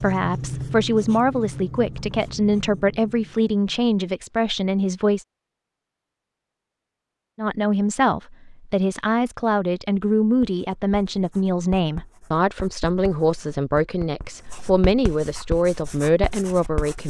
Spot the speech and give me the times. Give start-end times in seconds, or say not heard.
0.0-5.2, 7.3-17.0.